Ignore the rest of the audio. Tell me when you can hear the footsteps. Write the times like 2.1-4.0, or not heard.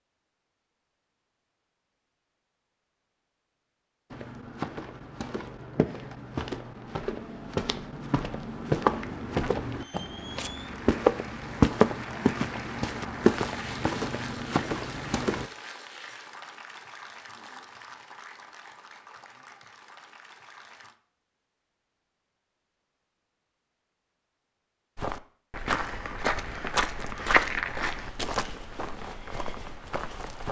4.1-15.4, 24.9-30.4.